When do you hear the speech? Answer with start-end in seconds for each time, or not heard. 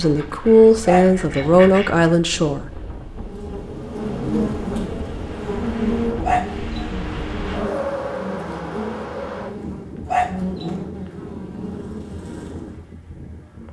0.0-2.8.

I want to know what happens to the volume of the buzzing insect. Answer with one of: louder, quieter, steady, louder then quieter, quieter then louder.
quieter.